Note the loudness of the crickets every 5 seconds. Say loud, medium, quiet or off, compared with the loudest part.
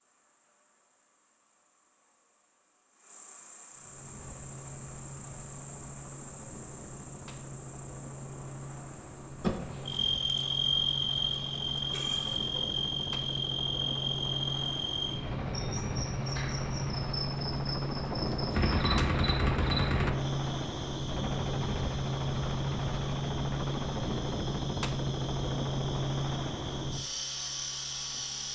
quiet, quiet, loud, medium, quiet, quiet.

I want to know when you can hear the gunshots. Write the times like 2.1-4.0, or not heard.
9.4-10.0, 18.1-20.1.